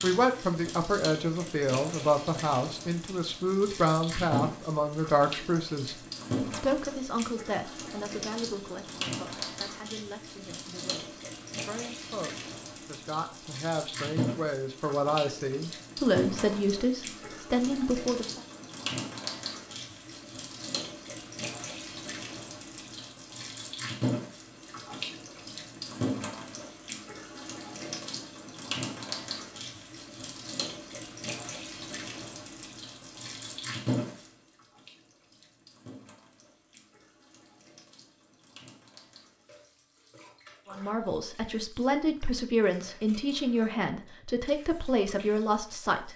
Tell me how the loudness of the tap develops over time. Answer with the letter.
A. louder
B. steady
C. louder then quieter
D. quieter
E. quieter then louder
D.